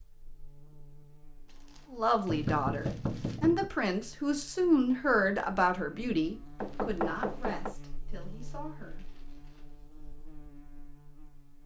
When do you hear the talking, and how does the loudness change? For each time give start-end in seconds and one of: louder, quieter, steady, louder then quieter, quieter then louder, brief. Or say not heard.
1.9-9.1 quieter.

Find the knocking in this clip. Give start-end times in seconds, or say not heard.
2.2-3.7, 6.6-7.8.